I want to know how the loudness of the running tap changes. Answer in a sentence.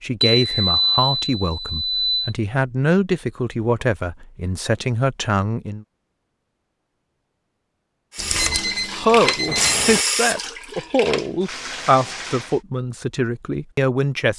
The loudness of the running tap goes up, then down.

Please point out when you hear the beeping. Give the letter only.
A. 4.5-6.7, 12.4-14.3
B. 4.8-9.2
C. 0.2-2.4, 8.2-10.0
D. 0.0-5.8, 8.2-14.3
C.